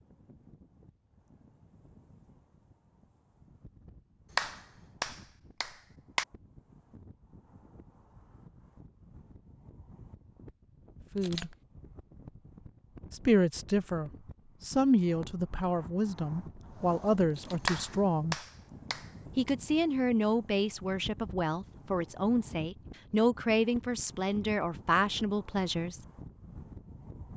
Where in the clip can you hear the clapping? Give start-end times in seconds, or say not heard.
4.3-6.2, 17.6-19.5.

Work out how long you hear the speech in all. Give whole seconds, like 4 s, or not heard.
12 s.